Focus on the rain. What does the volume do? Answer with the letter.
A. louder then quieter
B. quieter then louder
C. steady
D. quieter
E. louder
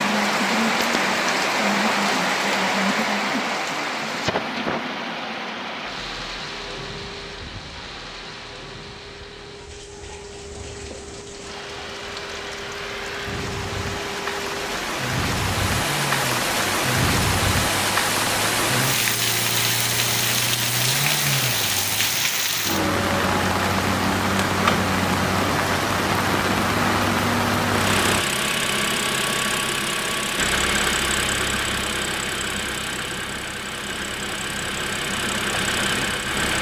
B.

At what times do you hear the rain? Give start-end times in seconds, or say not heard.
0.0-28.2.